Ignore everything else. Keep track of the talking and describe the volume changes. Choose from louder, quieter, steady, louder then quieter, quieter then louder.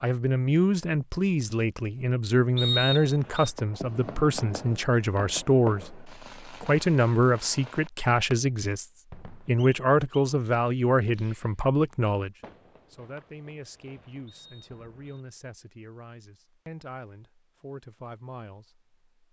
quieter.